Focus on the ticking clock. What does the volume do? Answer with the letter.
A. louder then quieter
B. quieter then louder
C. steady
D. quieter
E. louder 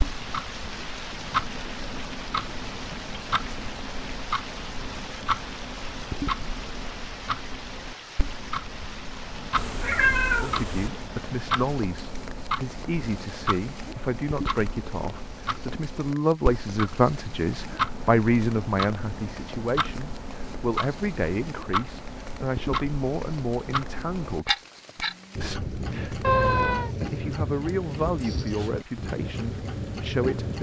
C.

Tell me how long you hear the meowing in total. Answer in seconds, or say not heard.
2 s.